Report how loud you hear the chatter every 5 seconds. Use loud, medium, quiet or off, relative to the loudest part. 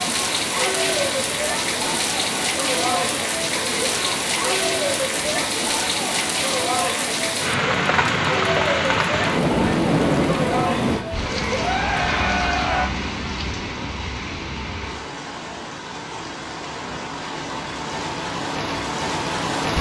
loud, loud, loud, off.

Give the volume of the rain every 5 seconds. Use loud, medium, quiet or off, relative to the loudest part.
loud, loud, loud, medium.